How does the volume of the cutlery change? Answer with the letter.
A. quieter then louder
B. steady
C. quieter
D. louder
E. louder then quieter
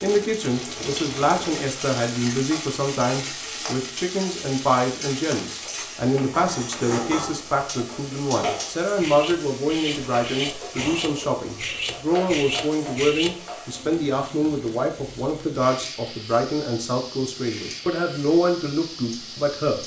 D.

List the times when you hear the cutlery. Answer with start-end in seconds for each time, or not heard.
7.7-13.3.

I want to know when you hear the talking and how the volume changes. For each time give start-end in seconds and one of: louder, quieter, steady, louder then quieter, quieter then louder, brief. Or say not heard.
0.0-19.8 steady.